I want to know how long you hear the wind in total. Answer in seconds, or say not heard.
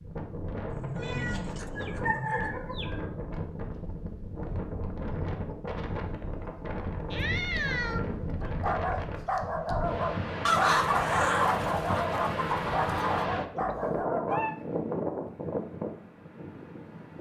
17 s.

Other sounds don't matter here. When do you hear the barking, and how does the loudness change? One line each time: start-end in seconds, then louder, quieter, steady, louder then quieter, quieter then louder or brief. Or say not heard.
8.4-14.5 steady.